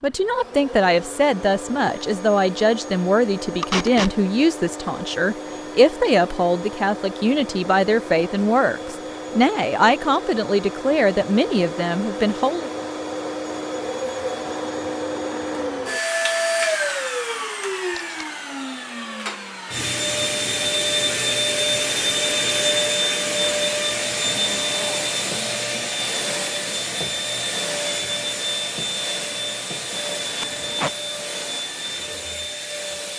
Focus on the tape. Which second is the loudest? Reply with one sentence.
The loudest moment of the tape is at 4 seconds.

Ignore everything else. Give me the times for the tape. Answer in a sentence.
You can hear the tape from 3.6 to 4.2 s, from 17.9 to 18.3 s and from 30.4 to 30.9 s.